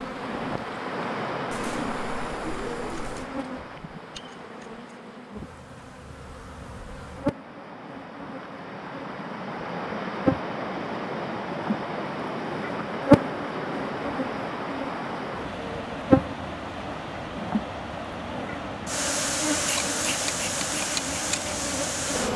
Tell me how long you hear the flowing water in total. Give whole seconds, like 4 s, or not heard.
22 s.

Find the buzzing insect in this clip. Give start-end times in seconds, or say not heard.
0.0-22.3.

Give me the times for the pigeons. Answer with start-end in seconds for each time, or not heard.
1.5-3.3.